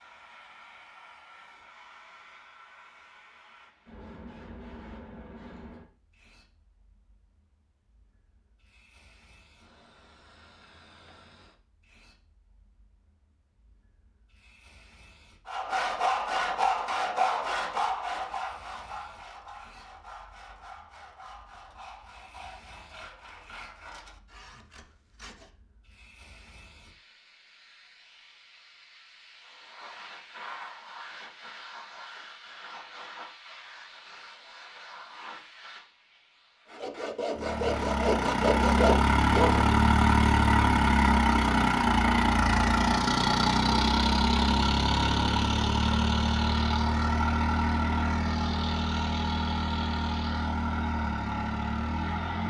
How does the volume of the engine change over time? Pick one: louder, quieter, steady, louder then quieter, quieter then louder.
quieter.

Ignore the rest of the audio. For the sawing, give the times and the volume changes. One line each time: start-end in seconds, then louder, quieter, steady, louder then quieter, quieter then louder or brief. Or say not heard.
15.4-25.5 quieter
36.8-39.6 brief.